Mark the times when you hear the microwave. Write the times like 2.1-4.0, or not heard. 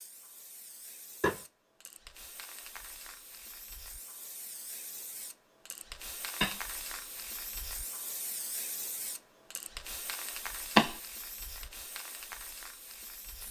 not heard.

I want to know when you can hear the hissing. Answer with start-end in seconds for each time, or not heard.
0.0-13.4.